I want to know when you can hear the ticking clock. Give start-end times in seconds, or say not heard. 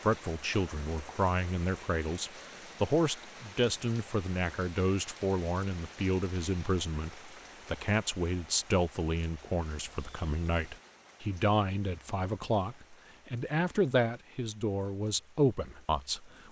not heard.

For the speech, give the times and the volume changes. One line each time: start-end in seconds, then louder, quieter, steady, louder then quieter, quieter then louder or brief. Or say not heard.
0.0-16.4 steady.